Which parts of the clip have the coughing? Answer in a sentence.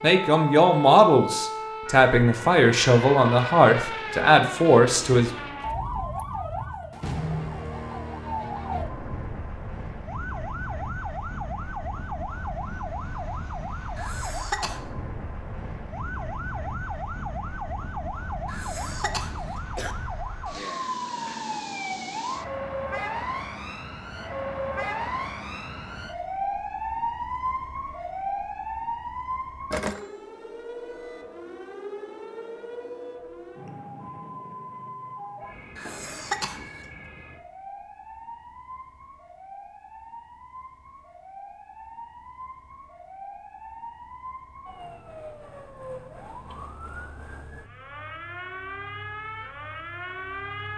You can hear the coughing from 13.9 to 14.8 s, from 18.4 to 19.9 s and from 35.8 to 36.9 s.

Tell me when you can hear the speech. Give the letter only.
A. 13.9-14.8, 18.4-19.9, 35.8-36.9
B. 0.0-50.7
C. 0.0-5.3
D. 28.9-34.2
C.